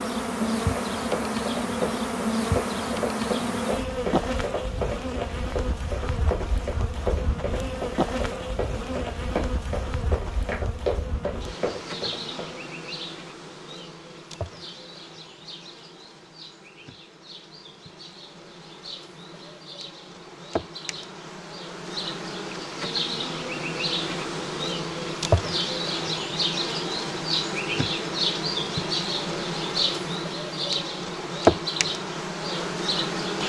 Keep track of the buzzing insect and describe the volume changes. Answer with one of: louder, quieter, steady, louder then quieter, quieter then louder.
quieter then louder.